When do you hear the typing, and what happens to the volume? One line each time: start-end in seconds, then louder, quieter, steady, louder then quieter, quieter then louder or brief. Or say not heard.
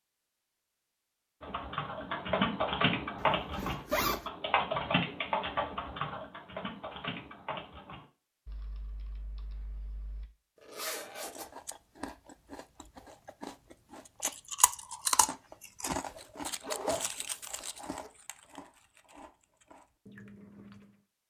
1.4-10.2 quieter.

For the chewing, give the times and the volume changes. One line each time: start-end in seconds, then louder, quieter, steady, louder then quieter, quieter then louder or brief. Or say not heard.
11.2-20.9 louder then quieter.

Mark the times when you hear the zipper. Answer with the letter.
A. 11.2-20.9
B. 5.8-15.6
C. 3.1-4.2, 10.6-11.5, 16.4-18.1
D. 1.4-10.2
C.